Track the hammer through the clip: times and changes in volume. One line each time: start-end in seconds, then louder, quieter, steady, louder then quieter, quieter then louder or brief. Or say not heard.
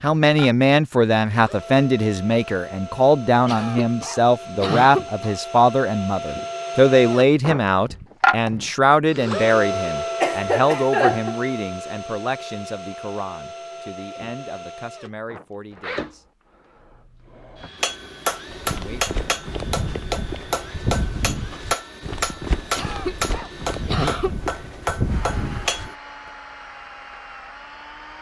17.8-25.9 steady.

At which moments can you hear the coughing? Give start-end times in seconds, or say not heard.
3.5-5.3, 10.2-11.4, 22.8-24.4.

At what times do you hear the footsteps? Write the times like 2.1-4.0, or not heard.
18.5-25.9.